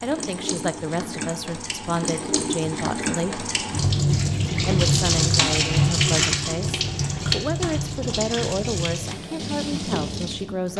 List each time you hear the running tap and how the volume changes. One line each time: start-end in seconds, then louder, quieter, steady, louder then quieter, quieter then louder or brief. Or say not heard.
0.0-10.7 louder then quieter.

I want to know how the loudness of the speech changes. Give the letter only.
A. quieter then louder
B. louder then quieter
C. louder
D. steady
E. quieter
D.